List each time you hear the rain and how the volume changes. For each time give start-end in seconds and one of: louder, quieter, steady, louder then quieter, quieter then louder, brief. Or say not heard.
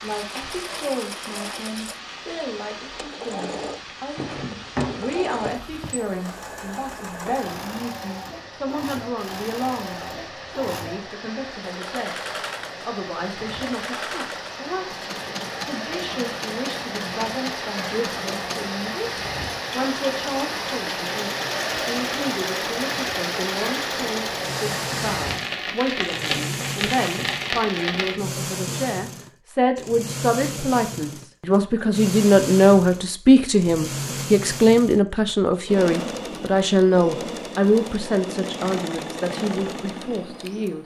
0.0-28.2 louder.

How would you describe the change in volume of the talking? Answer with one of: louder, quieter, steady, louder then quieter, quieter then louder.
louder.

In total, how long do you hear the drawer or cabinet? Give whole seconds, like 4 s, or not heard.
2 s.